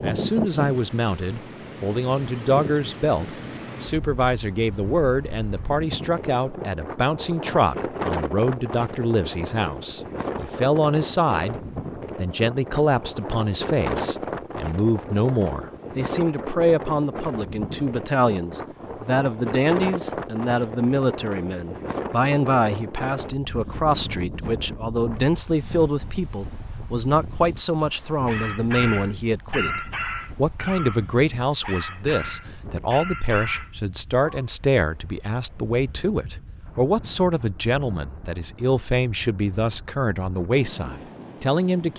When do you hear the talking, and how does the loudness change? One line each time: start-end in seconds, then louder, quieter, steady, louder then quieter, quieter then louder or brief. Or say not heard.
0.0-41.9 steady.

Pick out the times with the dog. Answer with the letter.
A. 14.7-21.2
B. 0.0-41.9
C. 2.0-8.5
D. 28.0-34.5
D.